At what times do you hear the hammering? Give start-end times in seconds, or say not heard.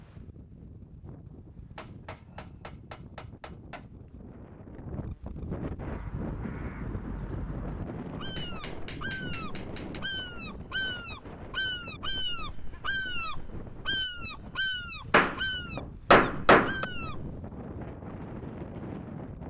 1.8-3.9, 8.3-10.0, 15.1-16.9.